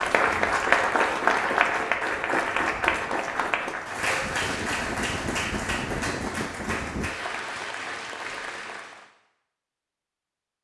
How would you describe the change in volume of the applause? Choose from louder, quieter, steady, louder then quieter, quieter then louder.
quieter.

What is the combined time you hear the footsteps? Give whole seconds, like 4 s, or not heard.
not heard.